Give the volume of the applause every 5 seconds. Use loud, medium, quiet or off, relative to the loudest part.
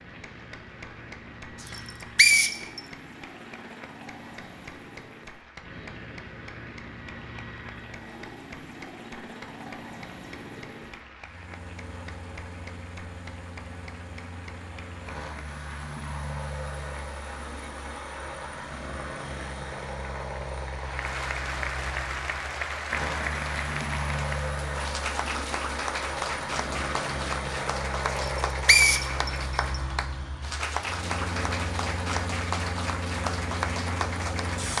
quiet, quiet, quiet, quiet, loud, loud, loud.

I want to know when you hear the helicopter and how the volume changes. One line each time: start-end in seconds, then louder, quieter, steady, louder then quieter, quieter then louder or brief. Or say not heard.
0.0-34.7 louder.